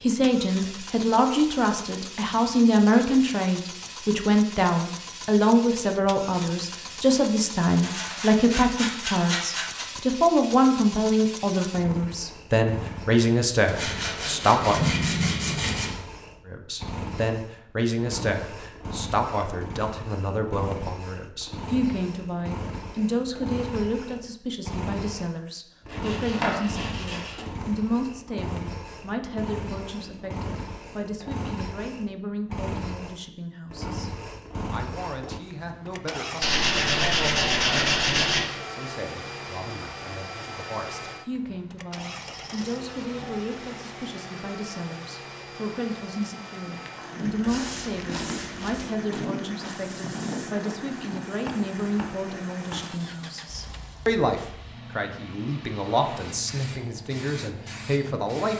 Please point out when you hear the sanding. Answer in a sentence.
You can hear the sanding from 7.8 to 9.8 s, from 13.7 to 15.9 s, from 25.9 to 27.4 s, from 36.4 to 38.5 s and from 47.3 to 49.0 s.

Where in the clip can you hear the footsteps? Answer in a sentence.
The footsteps can be heard from 46.5 to 53.1 s.